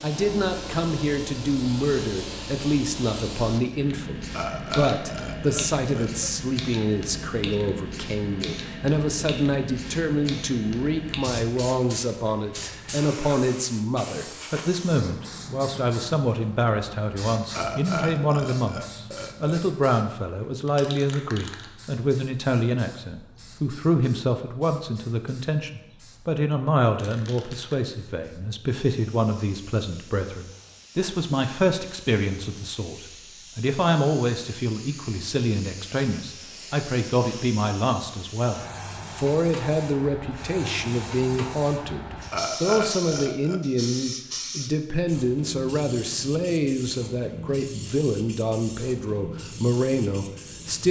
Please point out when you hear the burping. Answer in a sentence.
The burping can be heard from 4.3 to 6.3 s, from 17.5 to 19.6 s and from 42.3 to 43.6 s.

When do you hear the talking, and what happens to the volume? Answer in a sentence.
The talking can be heard from 0.0 to 50.8 s, at a steady volume.